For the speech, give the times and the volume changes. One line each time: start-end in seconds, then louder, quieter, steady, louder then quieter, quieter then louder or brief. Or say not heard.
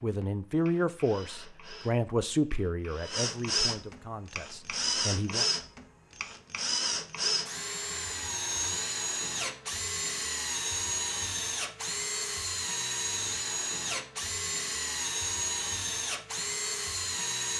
0.0-5.5 quieter.